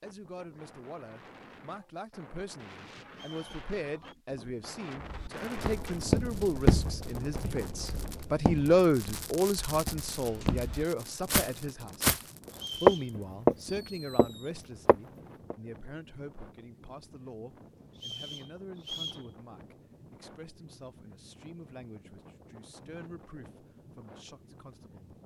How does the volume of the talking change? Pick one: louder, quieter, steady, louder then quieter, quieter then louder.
louder then quieter.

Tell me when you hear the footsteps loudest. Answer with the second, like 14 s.
13 s.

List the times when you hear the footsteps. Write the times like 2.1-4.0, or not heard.
5.0-15.6.